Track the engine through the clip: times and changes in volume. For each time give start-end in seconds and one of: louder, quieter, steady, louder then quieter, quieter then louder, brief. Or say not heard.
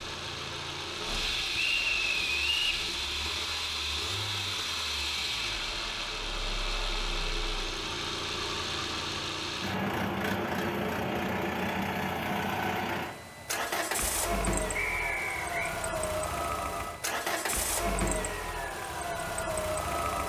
0.0-20.2 steady.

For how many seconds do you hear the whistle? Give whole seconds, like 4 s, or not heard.
2 s.